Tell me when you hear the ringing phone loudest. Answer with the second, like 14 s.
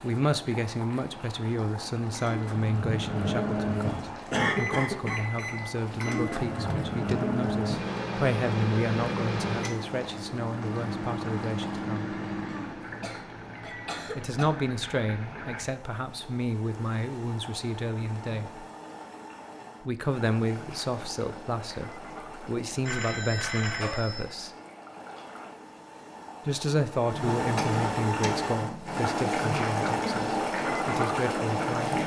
24 s.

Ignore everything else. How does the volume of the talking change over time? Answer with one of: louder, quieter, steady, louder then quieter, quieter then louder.
steady.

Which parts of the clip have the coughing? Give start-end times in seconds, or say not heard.
4.3-5.2, 12.4-14.4, 27.4-29.1.